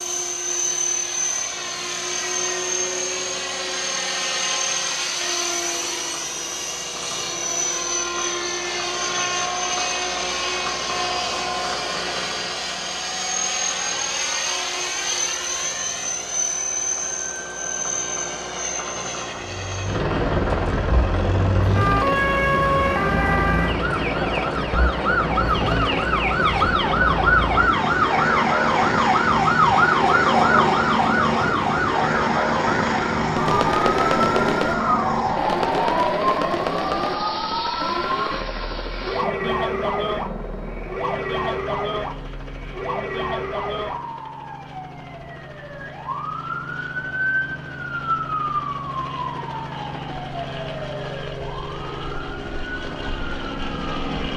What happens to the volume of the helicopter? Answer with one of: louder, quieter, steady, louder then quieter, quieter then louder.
quieter.